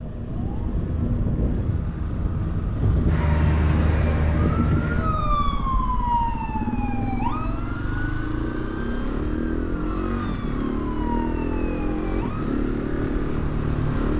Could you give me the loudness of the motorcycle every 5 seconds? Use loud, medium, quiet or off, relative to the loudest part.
medium, loud, loud.